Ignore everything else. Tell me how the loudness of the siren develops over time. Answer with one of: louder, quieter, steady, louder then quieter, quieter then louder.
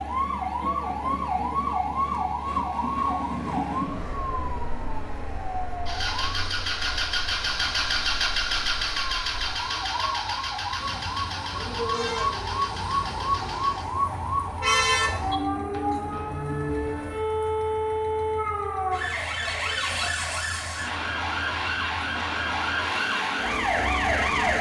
quieter then louder.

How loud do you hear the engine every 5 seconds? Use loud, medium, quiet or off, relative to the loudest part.
quiet, loud, medium, quiet, quiet.